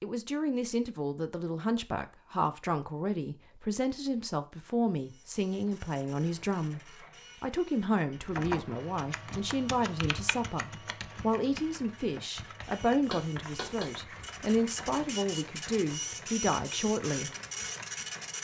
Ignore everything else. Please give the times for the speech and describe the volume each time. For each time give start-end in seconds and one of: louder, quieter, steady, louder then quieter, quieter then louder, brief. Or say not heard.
0.0-17.3 steady.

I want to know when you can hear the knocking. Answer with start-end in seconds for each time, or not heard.
13.1-13.9.